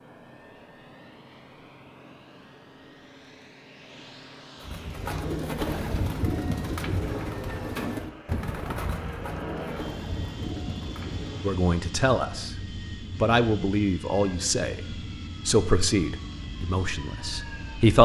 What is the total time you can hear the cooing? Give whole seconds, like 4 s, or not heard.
7 s.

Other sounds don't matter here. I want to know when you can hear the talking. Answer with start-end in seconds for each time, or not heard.
11.4-12.6, 13.2-14.8, 15.4-18.0.